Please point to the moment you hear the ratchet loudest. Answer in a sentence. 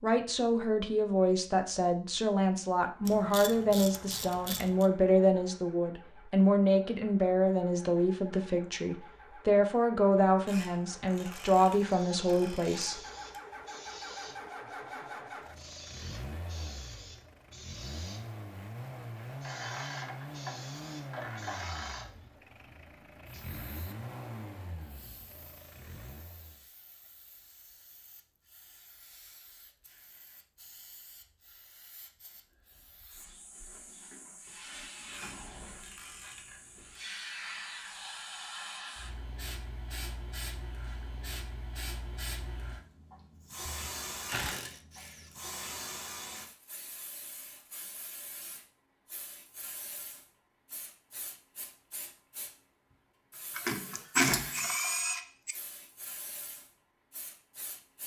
The loudest moment of the ratchet is at 54 seconds.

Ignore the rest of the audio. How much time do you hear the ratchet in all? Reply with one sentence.
You can hear the ratchet for 13 seconds altogether.